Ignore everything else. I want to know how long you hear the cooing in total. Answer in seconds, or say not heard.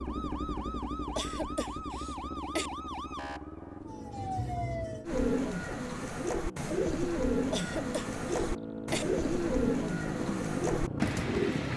7 s.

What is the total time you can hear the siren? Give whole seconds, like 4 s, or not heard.
5 s.